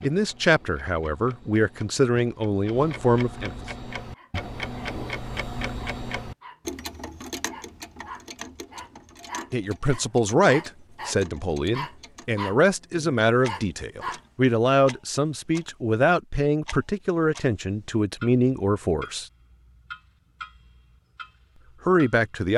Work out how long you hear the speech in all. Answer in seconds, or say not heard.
14 s.